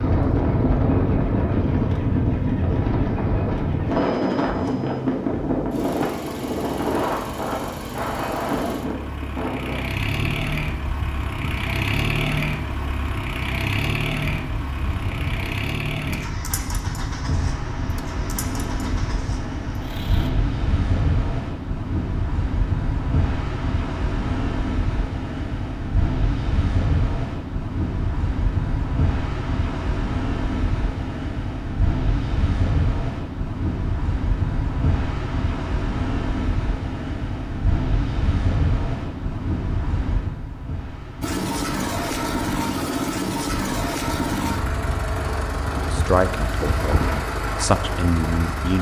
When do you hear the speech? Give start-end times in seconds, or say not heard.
45.9-48.7.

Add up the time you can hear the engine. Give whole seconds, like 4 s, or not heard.
28 s.